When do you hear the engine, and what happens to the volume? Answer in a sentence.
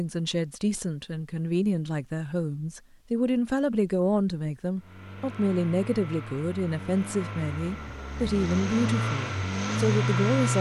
The engine can be heard from 4.8 to 10.5 s, getting louder.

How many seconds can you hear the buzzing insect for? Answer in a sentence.
You can't hear the buzzing insect here.